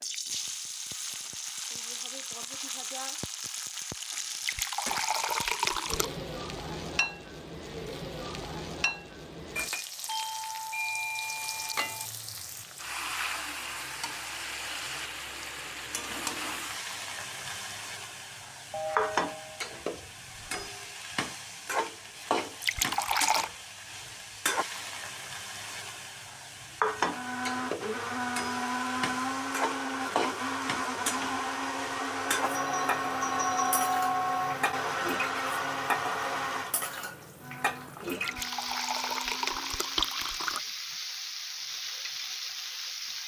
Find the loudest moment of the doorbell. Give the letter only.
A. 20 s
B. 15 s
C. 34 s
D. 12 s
C.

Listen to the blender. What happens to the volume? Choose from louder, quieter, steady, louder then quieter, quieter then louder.
quieter.